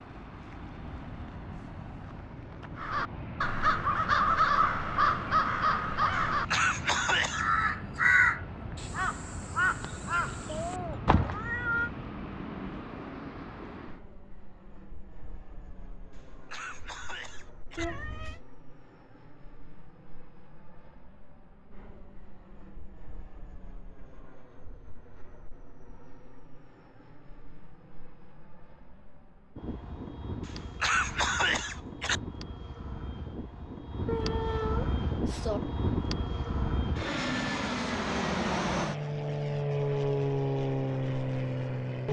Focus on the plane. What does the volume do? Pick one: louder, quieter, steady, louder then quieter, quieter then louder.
quieter then louder.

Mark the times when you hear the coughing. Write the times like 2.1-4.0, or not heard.
6.2-7.5, 16.1-17.9, 30.4-32.2.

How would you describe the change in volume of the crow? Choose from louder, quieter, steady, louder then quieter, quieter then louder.
quieter.